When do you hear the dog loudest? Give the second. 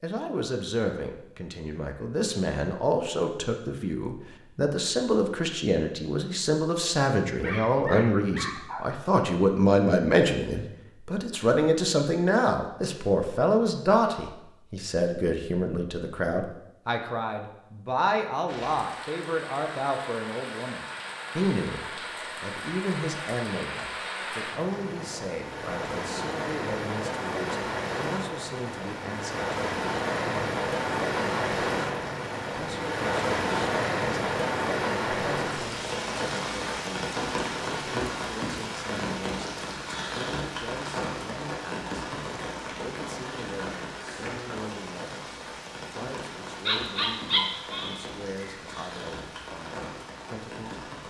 47 s.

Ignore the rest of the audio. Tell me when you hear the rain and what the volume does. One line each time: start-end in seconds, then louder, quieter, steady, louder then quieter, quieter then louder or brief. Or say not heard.
18.4-51.0 louder then quieter.